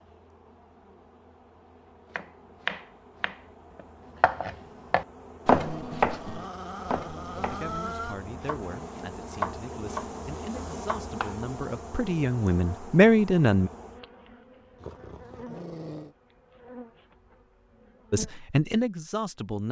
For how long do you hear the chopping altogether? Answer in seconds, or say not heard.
9 s.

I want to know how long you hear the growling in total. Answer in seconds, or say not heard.
4 s.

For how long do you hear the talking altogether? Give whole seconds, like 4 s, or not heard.
8 s.